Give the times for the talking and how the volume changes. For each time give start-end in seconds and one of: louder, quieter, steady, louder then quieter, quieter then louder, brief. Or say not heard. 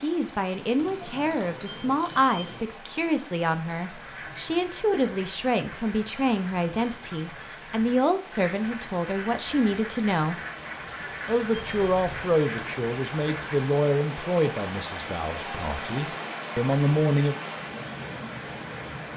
0.0-10.3 steady
11.2-17.4 quieter then louder.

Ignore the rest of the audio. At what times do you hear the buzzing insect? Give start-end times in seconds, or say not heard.
not heard.